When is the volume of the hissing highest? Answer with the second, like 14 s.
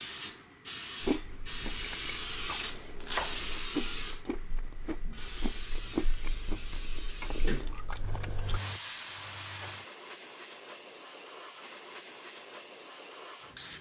2 s.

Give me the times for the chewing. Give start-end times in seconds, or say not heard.
1.0-8.6.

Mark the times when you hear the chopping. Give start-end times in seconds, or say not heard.
2.6-3.5.